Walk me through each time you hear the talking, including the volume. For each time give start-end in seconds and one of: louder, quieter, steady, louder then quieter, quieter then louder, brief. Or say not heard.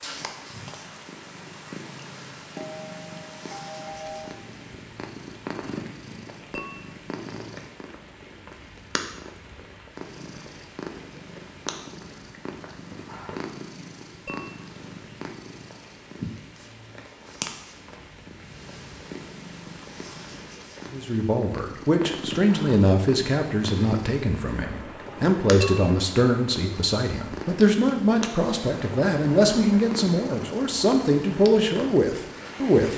20.9-32.9 steady.